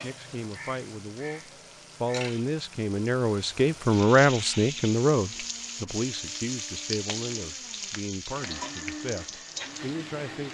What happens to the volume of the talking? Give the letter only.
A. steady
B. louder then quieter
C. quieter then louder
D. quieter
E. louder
B.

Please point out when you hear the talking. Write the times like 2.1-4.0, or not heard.
0.0-10.4.